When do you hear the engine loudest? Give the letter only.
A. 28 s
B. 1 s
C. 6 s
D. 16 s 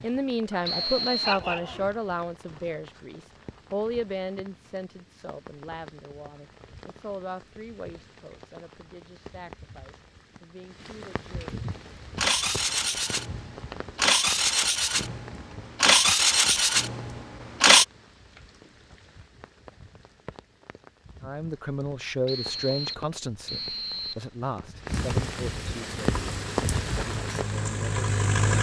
D.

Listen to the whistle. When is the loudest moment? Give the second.
1 s.